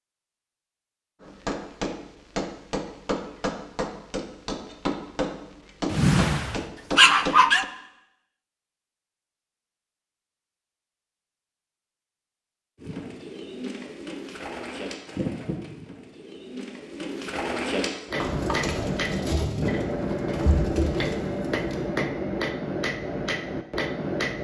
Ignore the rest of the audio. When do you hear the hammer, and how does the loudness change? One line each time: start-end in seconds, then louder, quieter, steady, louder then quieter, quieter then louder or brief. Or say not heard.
1.2-7.7 steady
18.1-24.4 steady.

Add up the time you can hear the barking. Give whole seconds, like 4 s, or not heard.
2 s.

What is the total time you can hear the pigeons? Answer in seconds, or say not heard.
9 s.